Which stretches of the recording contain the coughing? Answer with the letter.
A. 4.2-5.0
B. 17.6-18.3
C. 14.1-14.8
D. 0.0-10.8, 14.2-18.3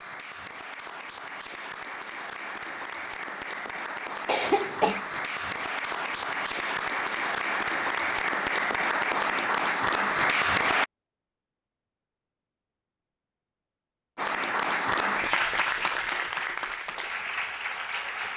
A.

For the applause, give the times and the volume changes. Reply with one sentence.
You can hear the applause from 0.0 to 10.8 s, getting louder; and from 14.2 to 18.3 s, getting quieter.